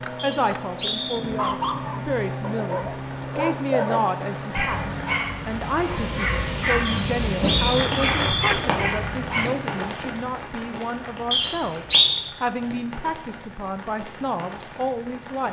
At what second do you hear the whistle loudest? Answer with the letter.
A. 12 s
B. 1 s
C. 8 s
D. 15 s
A.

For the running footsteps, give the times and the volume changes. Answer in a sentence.
You can't hear the running footsteps here.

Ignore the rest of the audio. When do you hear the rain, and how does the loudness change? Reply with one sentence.
You can hear the rain from 0.0 to 15.4 s, getting louder then quieter.